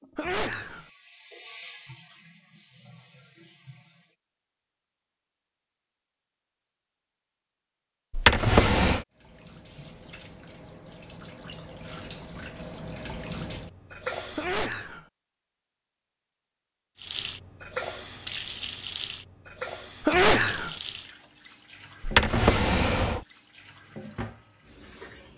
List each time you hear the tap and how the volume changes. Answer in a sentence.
The tap can be heard from 0.0 to 4.2 s, getting louder then quieter; from 9.1 to 14.7 s, getting louder; and from 16.9 to 25.3 s, getting quieter.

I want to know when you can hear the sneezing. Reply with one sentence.
The sneezing can be heard from 0.1 to 0.8 s, from 14.3 to 15.1 s and from 20.1 to 20.8 s.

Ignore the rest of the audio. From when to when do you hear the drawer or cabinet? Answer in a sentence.
The drawer or cabinet can be heard from 8.1 to 9.1 s and from 22.0 to 23.2 s.